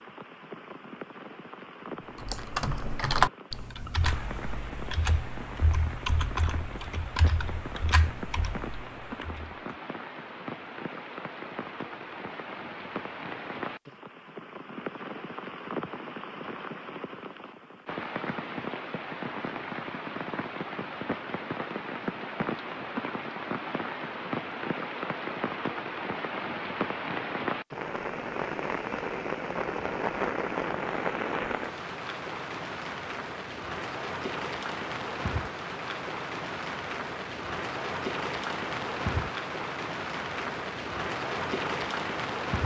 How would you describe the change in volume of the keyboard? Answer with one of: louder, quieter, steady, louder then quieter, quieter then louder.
quieter.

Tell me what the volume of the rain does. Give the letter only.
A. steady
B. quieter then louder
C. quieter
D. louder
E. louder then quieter
D.